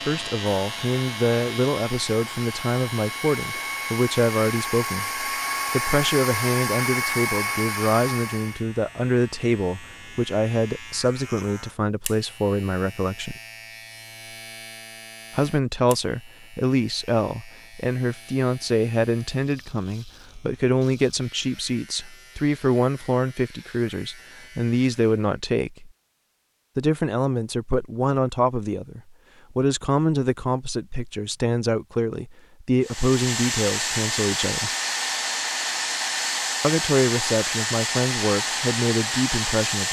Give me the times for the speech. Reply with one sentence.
You can hear the speech from 0.1 to 13.3 s, from 15.3 to 25.9 s, from 26.8 to 34.7 s and from 36.6 to 39.8 s.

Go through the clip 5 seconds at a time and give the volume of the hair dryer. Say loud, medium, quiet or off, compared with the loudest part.
medium, loud, off, off, off, off, loud, loud.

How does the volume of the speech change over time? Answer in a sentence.
The volume of the speech stays about the same.